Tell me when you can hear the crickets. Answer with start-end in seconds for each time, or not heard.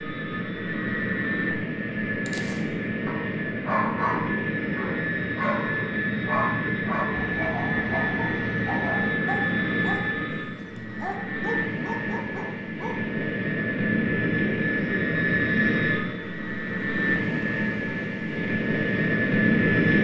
not heard.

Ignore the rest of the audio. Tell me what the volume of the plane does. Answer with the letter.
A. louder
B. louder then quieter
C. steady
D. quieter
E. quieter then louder
C.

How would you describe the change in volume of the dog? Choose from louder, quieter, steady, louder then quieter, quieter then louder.
quieter.